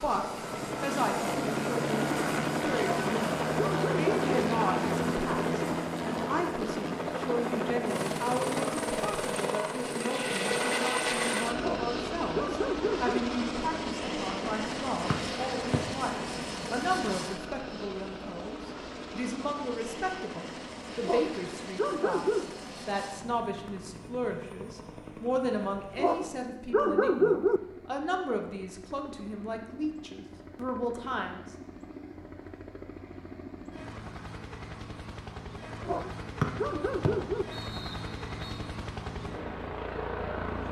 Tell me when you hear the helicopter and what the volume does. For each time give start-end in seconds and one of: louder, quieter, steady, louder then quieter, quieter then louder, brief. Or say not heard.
0.0-40.6 quieter then louder.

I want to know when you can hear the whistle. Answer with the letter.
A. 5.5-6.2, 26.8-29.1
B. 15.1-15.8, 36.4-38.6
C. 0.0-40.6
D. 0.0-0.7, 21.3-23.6
B.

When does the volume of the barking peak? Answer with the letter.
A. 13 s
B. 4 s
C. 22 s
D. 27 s
D.